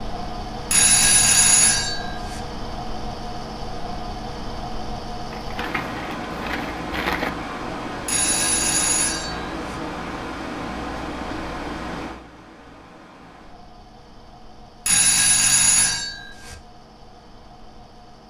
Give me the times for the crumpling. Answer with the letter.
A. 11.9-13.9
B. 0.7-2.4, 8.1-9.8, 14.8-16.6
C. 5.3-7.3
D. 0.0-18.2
C.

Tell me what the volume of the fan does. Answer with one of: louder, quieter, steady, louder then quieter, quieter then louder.
quieter.